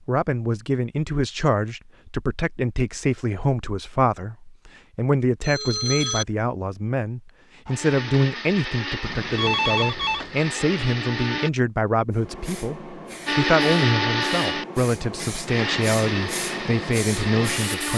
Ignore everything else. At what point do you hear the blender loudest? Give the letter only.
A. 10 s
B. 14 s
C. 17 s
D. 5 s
B.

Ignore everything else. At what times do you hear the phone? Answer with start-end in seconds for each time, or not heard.
5.4-6.2, 9.0-10.3.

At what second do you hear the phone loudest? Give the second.
10 s.